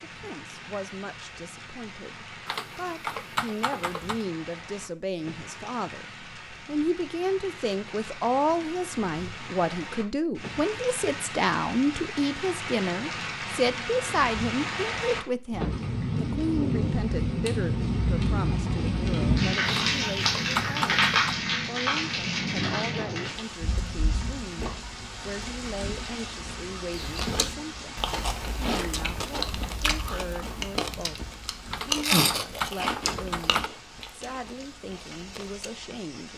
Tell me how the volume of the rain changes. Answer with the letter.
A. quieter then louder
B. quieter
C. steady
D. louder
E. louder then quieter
E.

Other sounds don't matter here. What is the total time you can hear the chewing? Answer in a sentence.
You can hear the chewing for 9 seconds altogether.